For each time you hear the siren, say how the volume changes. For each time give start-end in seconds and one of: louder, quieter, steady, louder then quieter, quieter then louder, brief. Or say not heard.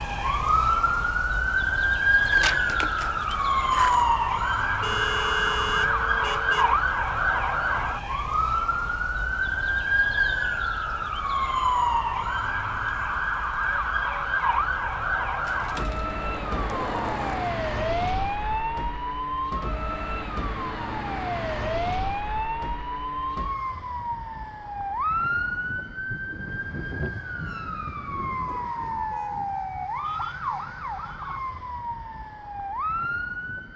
0.0-33.7 quieter.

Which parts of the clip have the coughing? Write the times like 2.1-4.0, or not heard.
not heard.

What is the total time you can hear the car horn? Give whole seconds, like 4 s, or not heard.
3 s.